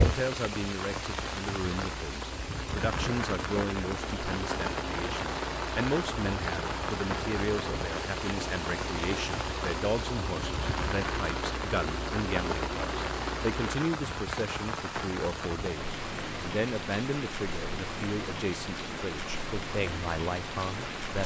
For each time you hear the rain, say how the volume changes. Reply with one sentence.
The rain can be heard from 0.0 to 21.2 s, at a steady volume.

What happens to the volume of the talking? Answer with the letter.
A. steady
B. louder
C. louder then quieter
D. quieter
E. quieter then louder
A.